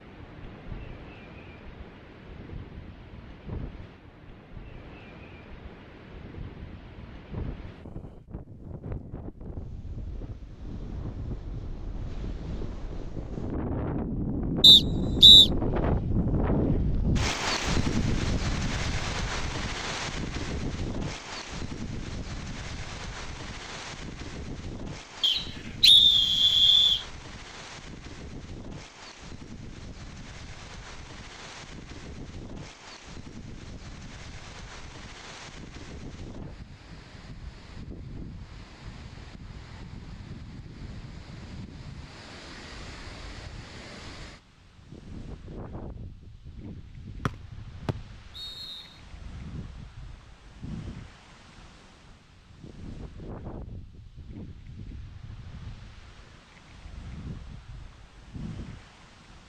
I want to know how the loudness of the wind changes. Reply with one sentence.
The volume of the wind goes up, then down.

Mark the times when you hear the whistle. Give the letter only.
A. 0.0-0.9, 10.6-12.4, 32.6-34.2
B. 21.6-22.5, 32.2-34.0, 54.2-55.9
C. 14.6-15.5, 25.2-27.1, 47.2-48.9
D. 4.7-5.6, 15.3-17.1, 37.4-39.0
C.